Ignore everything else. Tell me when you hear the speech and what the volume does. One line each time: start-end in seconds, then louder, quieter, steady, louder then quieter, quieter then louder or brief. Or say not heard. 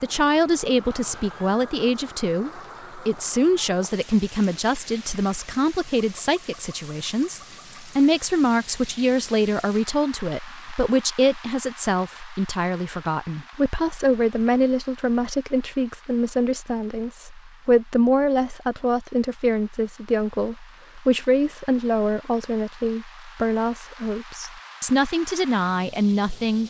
0.0-26.6 steady.